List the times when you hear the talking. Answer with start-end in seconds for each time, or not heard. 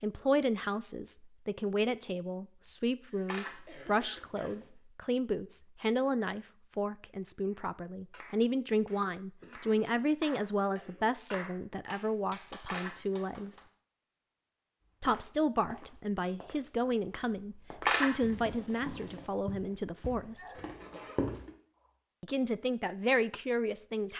0.0-13.6, 15.0-20.5, 22.2-24.1.